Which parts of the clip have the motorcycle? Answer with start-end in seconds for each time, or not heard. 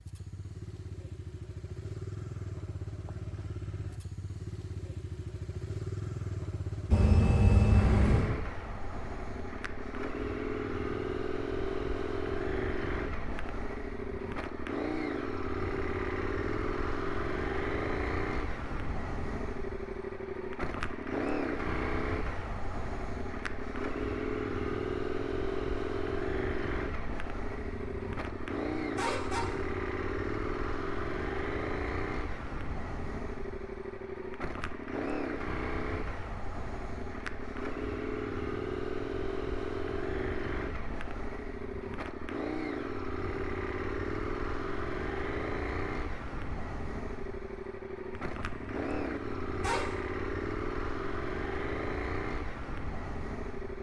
0.0-53.7.